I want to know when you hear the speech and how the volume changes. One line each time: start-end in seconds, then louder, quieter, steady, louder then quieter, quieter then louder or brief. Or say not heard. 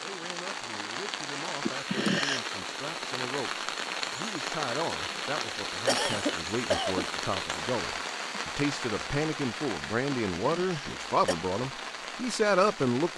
0.0-13.1 louder.